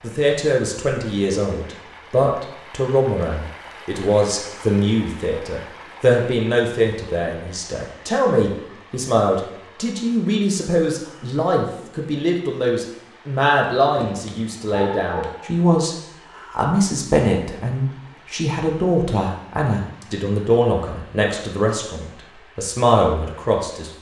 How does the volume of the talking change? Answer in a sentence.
The loudness of the talking stays about the same.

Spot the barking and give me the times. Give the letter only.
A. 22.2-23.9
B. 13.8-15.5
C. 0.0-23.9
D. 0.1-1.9
B.